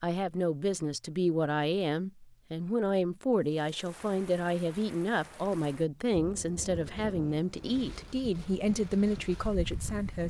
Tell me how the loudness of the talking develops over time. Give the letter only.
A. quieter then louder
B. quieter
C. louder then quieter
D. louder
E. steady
E.